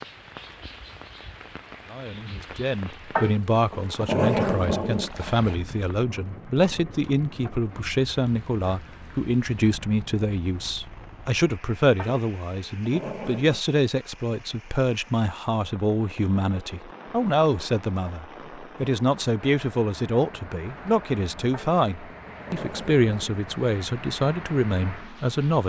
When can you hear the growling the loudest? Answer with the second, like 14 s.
4 s.